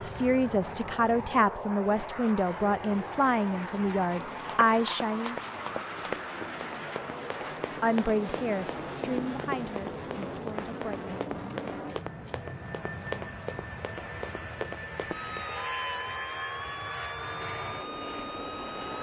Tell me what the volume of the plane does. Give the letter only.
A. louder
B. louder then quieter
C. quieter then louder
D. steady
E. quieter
D.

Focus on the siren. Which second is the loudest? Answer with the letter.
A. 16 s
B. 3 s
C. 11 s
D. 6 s
A.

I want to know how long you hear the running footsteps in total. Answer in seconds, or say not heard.
11 s.